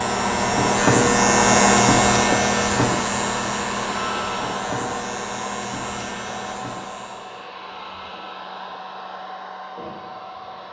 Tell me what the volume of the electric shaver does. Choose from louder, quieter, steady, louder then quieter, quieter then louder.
quieter.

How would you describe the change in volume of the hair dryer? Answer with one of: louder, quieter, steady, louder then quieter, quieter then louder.
quieter.